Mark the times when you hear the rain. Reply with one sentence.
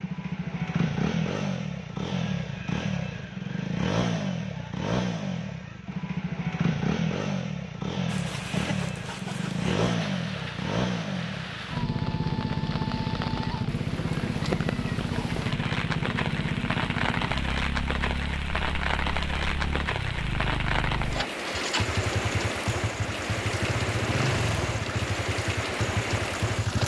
You can hear the rain from 8.1 to 26.8 s.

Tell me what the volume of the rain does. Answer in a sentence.
The loudness of the rain goes up.